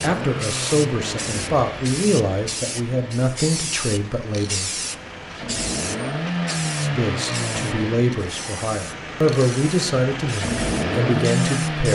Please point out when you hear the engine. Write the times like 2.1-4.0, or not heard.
0.0-11.9.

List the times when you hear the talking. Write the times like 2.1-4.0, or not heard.
0.0-4.8, 6.8-11.9.